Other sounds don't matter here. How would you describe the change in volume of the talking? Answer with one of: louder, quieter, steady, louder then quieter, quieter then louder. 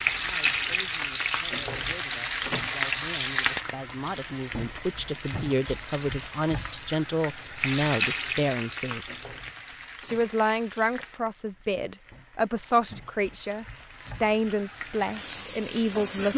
louder.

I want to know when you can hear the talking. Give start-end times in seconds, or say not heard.
0.1-9.3, 10.1-16.3.